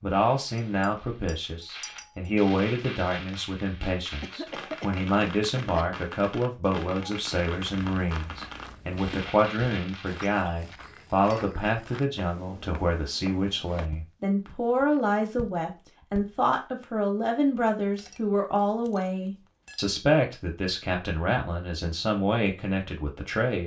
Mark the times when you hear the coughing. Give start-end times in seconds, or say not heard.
4.2-5.9.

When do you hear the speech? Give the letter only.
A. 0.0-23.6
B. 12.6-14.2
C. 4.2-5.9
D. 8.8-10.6
A.